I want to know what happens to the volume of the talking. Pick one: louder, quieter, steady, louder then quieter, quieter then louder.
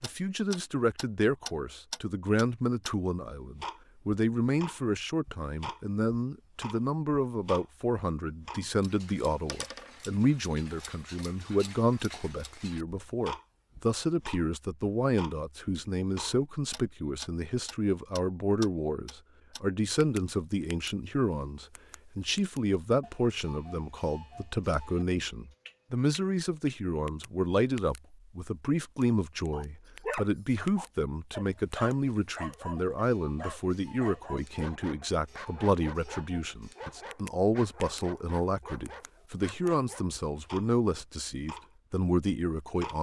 steady.